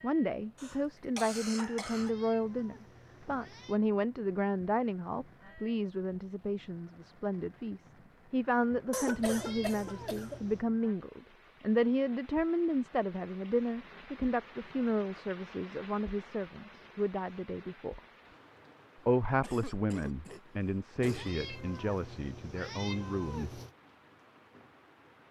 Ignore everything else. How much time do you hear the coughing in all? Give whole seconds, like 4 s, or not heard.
5 s.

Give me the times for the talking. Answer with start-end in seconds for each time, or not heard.
0.0-18.0, 19.1-23.6.